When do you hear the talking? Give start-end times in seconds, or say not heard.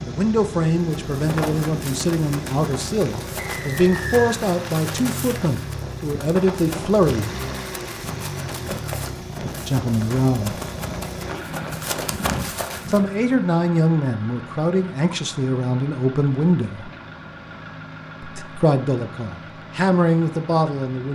0.0-7.3, 9.6-10.6, 12.8-16.9, 18.2-21.1.